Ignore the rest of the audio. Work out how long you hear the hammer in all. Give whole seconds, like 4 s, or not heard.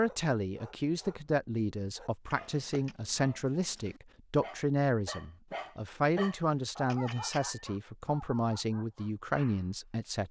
not heard.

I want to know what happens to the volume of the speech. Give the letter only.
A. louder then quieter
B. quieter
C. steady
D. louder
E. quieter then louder
C.